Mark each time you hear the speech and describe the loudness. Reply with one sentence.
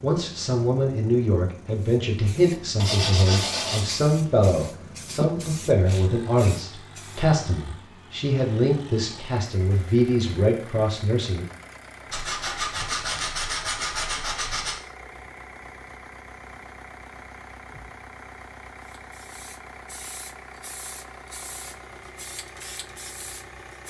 The speech can be heard from 0.0 to 11.4 s, at a steady volume.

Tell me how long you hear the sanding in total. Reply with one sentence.
You can hear the sanding for 4 seconds altogether.